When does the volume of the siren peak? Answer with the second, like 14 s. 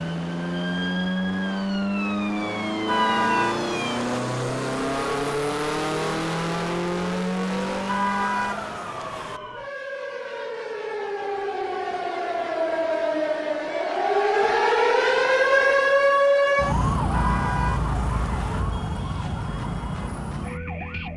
16 s.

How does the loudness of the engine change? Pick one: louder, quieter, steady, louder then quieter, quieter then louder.
steady.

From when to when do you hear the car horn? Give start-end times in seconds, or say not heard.
2.9-4.2, 7.8-9.4, 17.1-18.6.